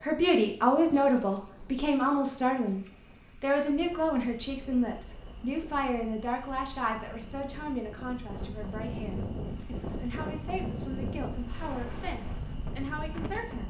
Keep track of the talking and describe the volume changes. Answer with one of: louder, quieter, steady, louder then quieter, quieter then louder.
quieter.